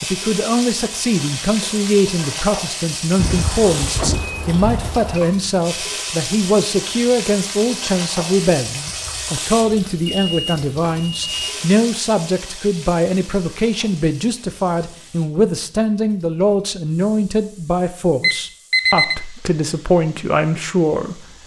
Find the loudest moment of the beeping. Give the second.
19 s.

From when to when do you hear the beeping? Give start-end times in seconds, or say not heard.
3.1-5.2, 10.2-11.6, 18.2-19.1.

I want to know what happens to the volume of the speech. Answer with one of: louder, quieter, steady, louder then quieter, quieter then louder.
steady.